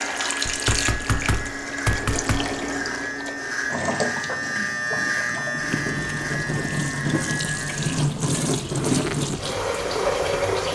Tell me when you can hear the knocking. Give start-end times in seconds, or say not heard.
0.5-2.5.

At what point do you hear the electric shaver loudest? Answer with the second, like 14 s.
5 s.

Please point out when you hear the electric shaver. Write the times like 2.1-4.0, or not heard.
0.0-8.1.